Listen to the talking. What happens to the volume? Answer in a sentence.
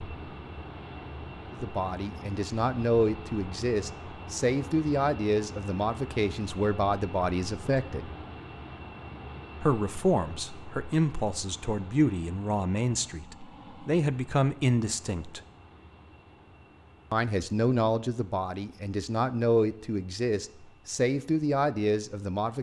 The loudness of the talking stays about the same.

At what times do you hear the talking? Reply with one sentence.
You can hear the talking from 1.5 to 8.1 s, from 9.6 to 15.4 s and from 17.1 to 22.5 s.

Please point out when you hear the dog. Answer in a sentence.
You can't hear the dog here.